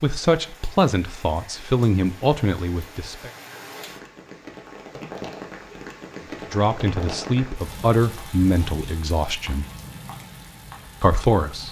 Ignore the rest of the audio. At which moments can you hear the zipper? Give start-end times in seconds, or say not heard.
not heard.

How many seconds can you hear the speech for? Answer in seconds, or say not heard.
7 s.